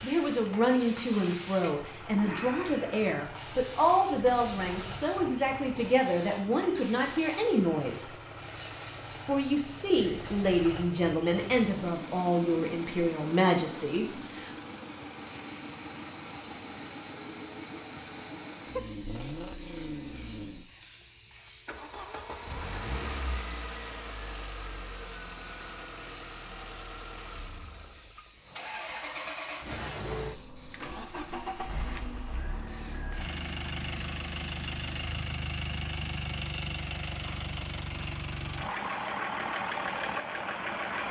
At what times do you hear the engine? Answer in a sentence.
You can hear the engine from 0.0 to 41.0 s.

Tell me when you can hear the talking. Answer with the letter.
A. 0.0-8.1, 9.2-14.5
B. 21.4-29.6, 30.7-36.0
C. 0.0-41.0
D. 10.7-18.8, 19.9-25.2
A.